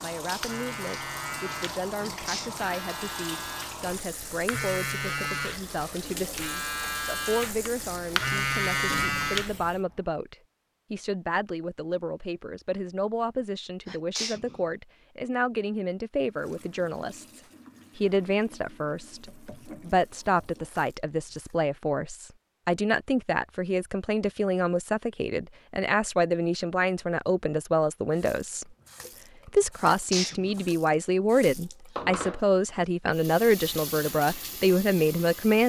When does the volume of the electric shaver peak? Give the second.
9 s.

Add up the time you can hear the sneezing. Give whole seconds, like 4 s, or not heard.
2 s.